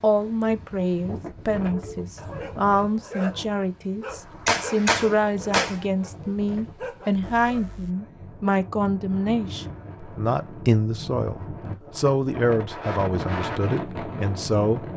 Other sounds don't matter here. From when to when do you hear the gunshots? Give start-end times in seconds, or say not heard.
4.1-5.8.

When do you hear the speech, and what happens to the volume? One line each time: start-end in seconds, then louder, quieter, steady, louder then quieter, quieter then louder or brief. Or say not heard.
0.0-14.9 steady.